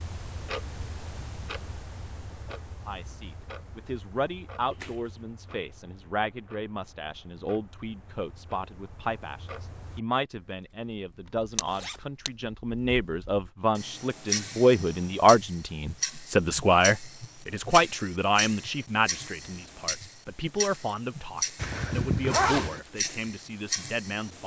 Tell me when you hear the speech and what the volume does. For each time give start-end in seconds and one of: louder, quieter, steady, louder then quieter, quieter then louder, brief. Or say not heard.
2.9-24.4 louder then quieter.